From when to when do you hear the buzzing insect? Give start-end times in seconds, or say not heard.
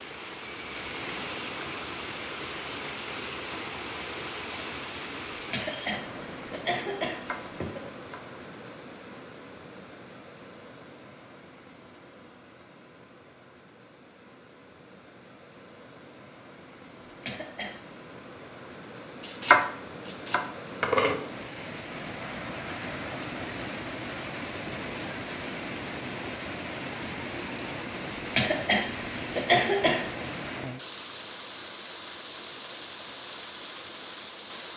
not heard.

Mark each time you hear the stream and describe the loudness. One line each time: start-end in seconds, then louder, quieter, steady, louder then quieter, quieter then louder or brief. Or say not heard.
0.0-34.7 quieter then louder.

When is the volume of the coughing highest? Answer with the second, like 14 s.
30 s.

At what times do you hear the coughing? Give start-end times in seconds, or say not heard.
5.3-7.8, 17.1-17.9, 28.1-30.3.